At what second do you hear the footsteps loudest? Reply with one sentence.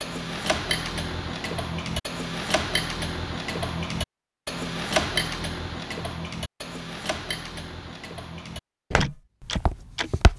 The volume of the footsteps peaks at 9 seconds.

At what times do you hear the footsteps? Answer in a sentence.
You can hear the footsteps from 8.9 to 10.3 s.